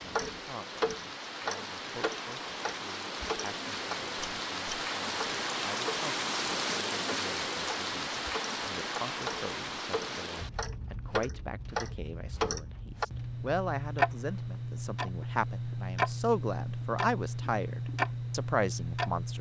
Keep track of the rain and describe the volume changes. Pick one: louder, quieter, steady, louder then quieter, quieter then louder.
louder then quieter.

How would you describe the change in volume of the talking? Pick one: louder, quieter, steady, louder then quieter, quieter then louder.
louder.